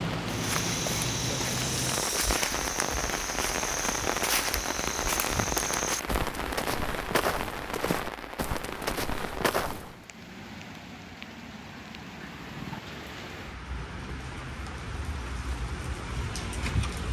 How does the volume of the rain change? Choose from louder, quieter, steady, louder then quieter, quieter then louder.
quieter.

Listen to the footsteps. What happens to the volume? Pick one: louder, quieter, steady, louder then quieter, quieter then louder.
steady.